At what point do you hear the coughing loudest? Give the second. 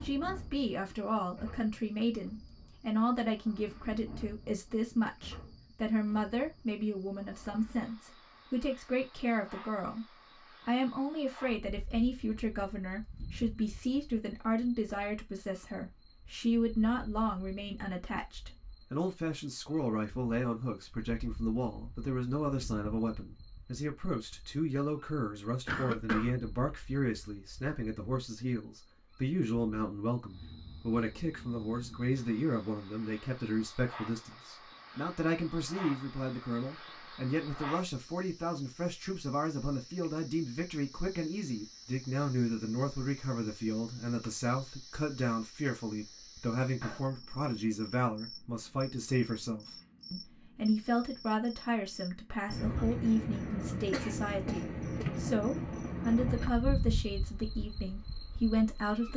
26 s.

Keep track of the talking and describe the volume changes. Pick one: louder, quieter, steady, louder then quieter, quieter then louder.
steady.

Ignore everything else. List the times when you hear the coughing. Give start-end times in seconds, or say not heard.
25.6-26.3, 53.9-55.1.